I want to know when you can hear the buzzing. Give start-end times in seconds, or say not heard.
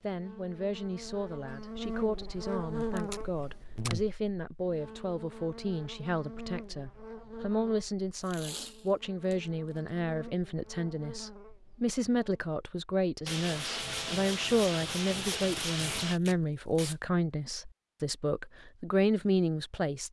0.0-12.4.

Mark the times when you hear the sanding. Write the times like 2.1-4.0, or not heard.
13.2-16.2.